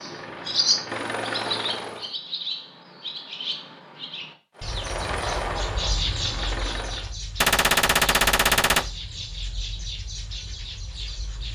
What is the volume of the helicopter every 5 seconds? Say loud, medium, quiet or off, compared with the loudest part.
loud, loud, off.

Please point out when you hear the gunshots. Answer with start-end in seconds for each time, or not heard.
7.4-8.8.